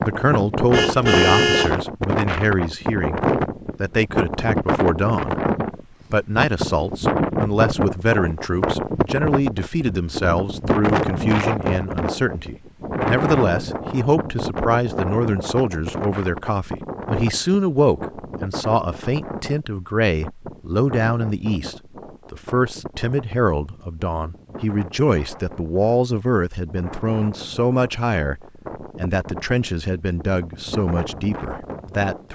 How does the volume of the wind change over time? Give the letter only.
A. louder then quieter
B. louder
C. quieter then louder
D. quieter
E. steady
D.